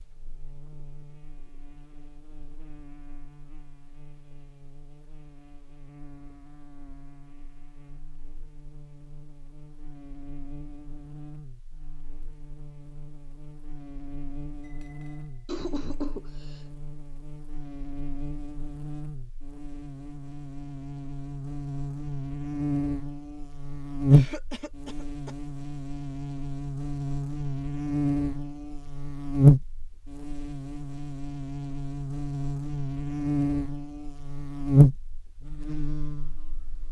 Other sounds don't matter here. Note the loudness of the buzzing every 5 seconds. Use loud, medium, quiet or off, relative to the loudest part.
quiet, quiet, quiet, quiet, loud, loud, loud, quiet.